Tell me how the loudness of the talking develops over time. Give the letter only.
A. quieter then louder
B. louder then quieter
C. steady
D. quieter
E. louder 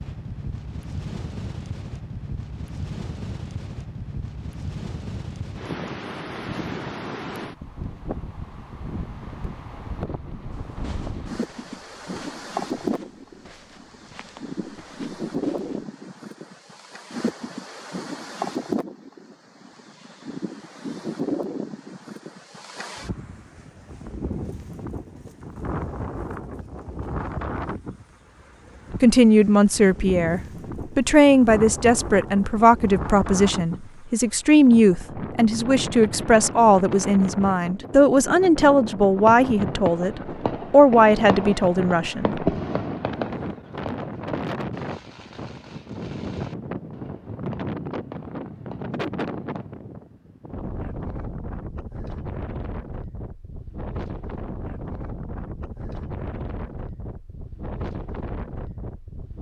C.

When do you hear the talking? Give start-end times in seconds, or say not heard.
29.0-42.4.